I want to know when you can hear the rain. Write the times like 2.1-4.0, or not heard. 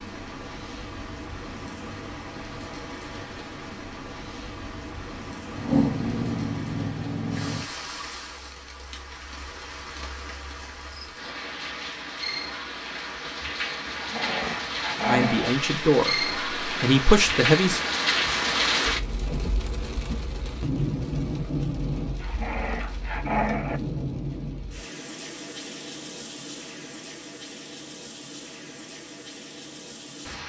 0.0-30.4.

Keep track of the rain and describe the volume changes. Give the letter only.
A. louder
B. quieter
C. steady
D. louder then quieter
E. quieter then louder
D.